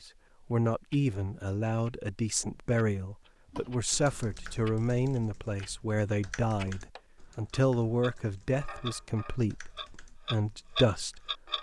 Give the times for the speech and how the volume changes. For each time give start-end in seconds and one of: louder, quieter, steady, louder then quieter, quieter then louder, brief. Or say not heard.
0.0-11.2 steady.